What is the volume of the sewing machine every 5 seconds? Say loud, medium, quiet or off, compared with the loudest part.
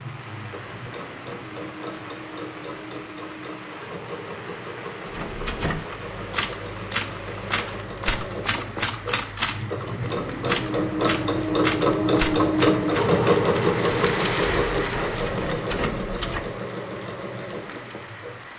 quiet, quiet, loud, medium.